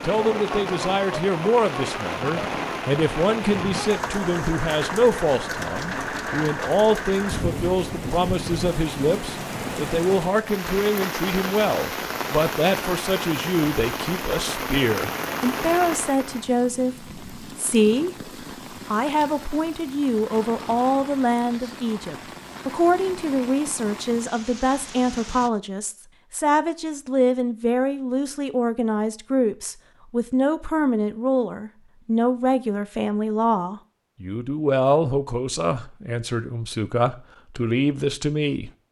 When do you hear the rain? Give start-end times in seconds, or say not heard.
0.0-25.5.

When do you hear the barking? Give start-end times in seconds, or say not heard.
not heard.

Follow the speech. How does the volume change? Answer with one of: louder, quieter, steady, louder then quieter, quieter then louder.
steady.